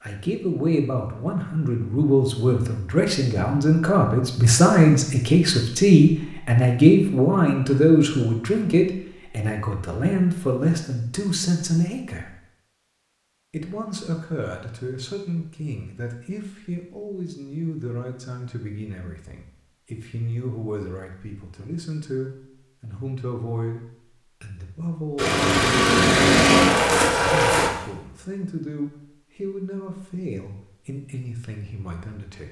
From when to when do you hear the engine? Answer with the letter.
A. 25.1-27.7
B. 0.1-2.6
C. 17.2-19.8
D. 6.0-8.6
A.